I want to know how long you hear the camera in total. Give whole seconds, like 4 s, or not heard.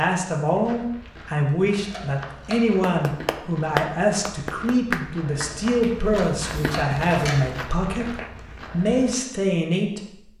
2 s.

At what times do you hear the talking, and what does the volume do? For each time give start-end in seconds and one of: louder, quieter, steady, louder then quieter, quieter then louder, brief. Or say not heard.
0.0-10.3 steady.